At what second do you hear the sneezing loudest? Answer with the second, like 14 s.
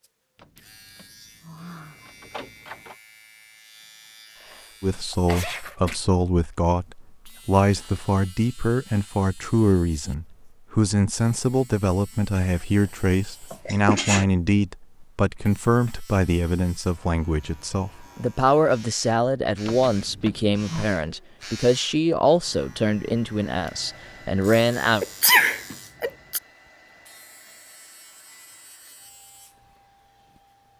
25 s.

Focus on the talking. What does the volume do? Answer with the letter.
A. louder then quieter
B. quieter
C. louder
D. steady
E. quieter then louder
D.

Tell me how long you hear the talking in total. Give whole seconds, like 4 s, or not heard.
20 s.